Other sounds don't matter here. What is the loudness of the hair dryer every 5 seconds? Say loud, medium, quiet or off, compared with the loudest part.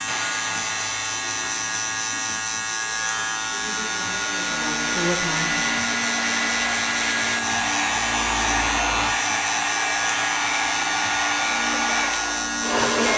medium, loud, loud.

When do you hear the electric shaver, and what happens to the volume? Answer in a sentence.
The electric shaver can be heard from 0.0 to 13.1 s, at a steady volume.